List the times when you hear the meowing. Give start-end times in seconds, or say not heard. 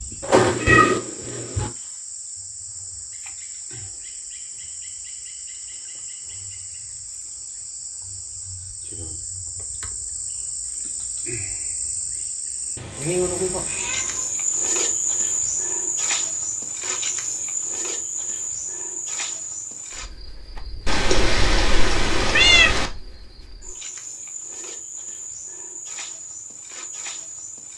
0.2-1.7, 12.8-14.3, 20.9-22.9.